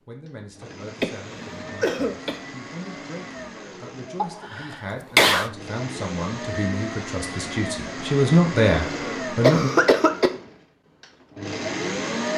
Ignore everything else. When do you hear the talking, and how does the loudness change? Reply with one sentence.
You can hear the talking from 0.1 to 9.7 s, getting louder.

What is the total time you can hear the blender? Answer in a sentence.
The blender can be heard for 12 seconds in total.